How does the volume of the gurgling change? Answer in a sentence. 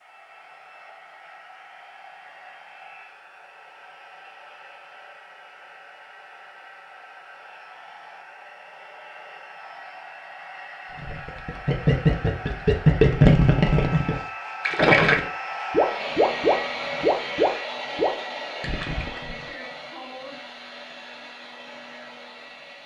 The loudness of the gurgling goes down.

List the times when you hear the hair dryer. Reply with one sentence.
You can hear the hair dryer from 0.0 to 22.8 s.